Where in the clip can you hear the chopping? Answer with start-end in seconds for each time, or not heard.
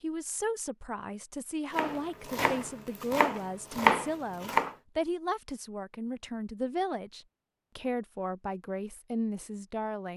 1.7-4.8.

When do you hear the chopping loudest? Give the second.
4 s.